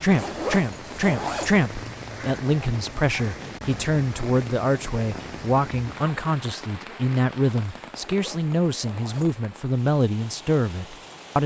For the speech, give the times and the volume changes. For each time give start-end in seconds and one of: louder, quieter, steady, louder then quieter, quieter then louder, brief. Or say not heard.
0.0-11.4 steady.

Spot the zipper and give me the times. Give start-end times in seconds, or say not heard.
0.1-1.6, 8.0-9.3.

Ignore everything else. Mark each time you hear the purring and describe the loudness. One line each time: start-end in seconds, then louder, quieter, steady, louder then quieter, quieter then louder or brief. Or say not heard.
not heard.